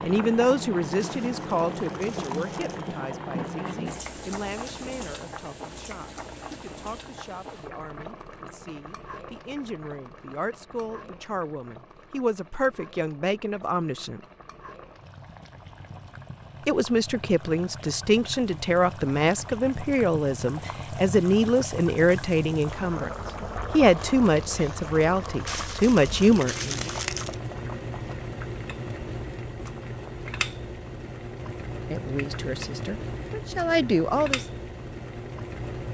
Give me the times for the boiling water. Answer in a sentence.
The boiling water can be heard from 0.0 to 35.8 s.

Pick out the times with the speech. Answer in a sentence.
The speech can be heard from 0.0 to 14.2 s, from 16.6 to 23.1 s, from 23.7 to 26.9 s and from 31.9 to 34.5 s.